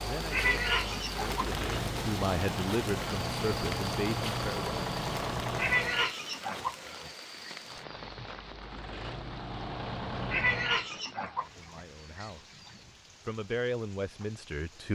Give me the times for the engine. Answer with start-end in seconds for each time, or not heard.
0.0-6.2, 7.6-10.8.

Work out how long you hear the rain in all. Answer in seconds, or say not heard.
15 s.